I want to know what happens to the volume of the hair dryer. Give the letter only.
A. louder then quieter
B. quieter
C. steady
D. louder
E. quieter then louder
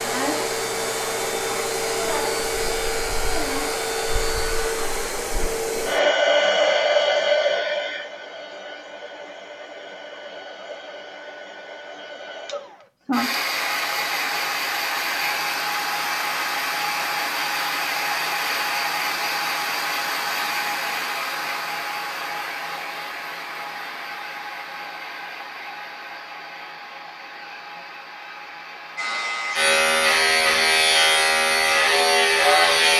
B.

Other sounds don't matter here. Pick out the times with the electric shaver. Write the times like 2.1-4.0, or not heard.
0.1-4.5, 28.9-32.9.